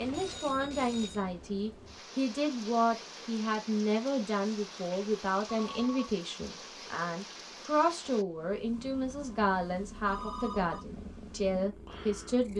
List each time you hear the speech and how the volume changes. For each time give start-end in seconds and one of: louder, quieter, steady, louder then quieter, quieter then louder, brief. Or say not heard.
0.0-12.5 steady.